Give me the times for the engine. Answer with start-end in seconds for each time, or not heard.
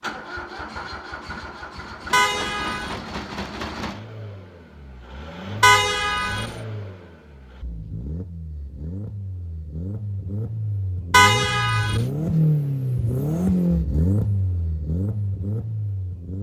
0.0-16.3.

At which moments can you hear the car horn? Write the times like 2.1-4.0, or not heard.
2.1-3.0, 5.6-6.5, 11.1-12.1.